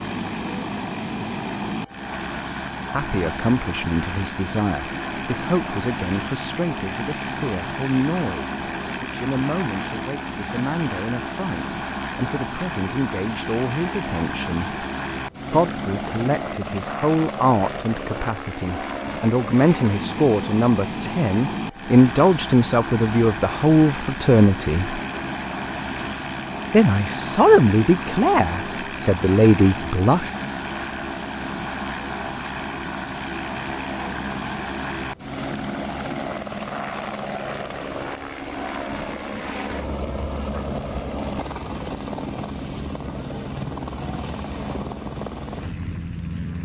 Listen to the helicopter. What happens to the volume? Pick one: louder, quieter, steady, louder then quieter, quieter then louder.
steady.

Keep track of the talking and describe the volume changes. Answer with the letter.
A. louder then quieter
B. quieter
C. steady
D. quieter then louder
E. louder
E.